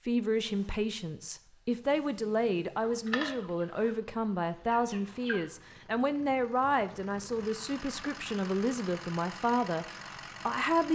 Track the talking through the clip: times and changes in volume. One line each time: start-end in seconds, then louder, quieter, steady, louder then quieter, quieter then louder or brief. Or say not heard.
0.1-10.9 steady.